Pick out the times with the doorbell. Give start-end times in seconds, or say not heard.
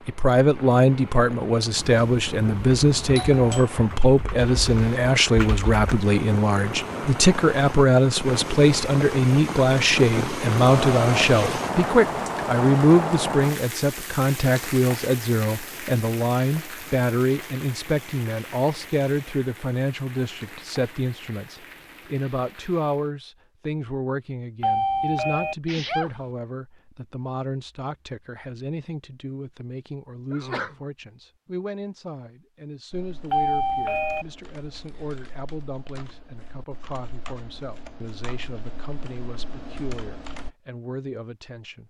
1.8-3.7, 24.6-25.6, 33.3-34.2.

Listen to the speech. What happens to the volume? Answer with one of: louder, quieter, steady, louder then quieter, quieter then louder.
quieter.